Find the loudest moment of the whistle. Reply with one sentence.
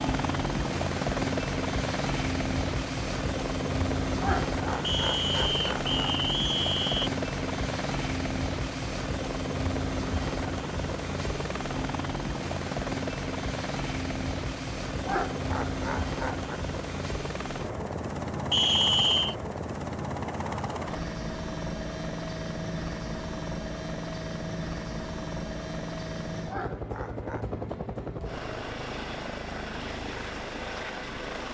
The volume of the whistle peaks at 19 seconds.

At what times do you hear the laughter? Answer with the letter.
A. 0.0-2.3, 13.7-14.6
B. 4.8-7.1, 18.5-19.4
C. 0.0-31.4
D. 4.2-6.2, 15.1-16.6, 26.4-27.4
D.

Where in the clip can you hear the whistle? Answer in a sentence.
The whistle can be heard from 4.8 to 7.1 s and from 18.5 to 19.4 s.